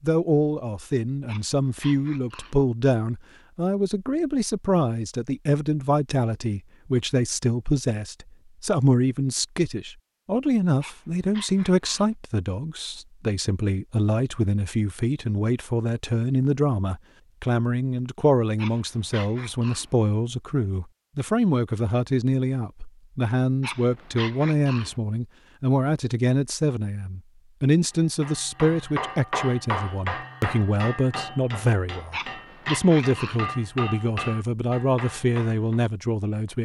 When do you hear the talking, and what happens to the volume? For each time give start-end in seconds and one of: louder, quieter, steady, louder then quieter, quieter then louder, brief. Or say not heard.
0.0-36.6 steady.